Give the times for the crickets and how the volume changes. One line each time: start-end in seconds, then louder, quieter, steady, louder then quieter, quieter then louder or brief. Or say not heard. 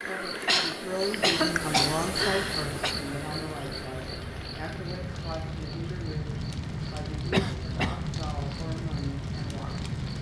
0.0-10.1 quieter.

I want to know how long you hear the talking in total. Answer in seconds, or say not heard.
10 s.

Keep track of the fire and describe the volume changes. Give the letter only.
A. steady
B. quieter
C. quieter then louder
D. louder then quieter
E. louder
E.